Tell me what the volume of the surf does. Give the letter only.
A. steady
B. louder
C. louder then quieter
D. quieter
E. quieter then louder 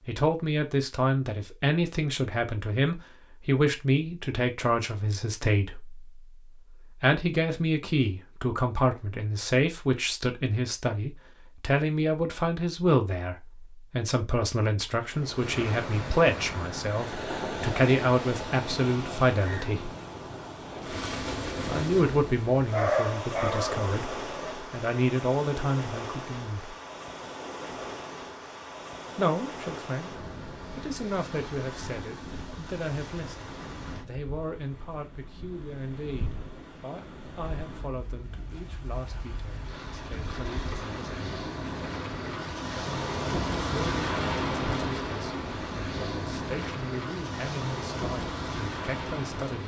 E.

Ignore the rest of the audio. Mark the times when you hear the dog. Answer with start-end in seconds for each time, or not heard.
22.7-24.6.